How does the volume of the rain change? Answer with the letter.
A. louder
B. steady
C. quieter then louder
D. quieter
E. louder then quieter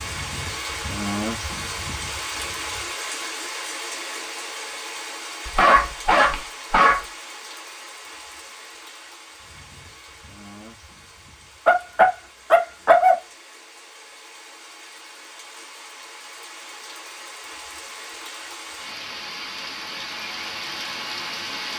C.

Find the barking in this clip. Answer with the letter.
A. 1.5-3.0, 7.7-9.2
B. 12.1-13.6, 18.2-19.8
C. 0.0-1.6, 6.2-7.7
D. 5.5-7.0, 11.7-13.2
D.